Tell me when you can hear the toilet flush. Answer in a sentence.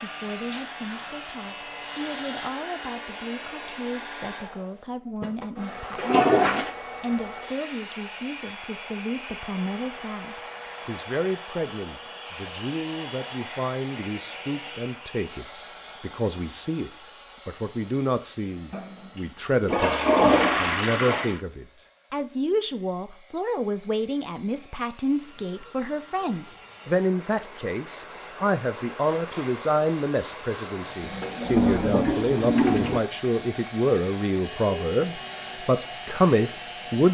You can hear the toilet flush from 6.0 to 6.8 s, from 18.7 to 21.4 s and from 31.0 to 33.0 s.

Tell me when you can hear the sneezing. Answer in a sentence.
You can't hear the sneezing here.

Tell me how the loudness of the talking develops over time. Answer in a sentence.
The volume of the talking goes up.